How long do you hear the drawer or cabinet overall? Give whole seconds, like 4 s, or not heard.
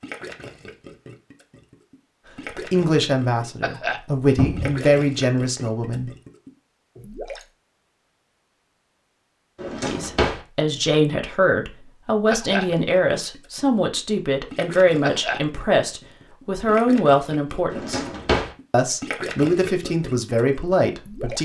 2 s.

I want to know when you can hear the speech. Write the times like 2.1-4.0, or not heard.
2.5-6.1, 9.8-18.0, 18.7-21.4.